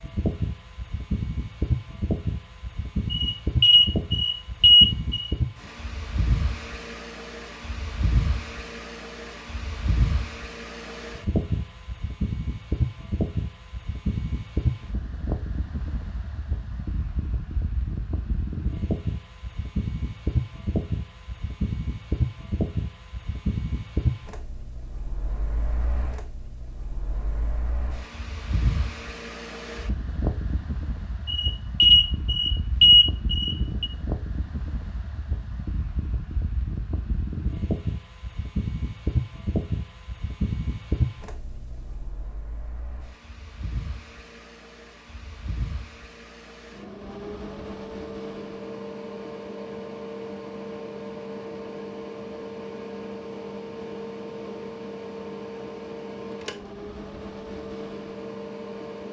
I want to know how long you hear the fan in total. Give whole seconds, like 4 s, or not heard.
59 s.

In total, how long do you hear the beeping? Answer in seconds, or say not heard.
5 s.